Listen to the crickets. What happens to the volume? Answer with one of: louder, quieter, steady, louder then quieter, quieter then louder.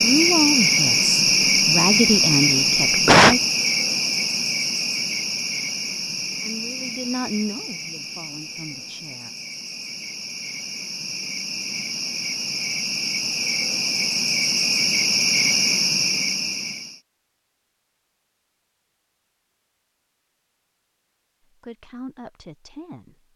quieter then louder.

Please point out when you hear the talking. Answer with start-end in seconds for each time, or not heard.
0.0-3.4, 6.4-9.3, 21.5-23.2.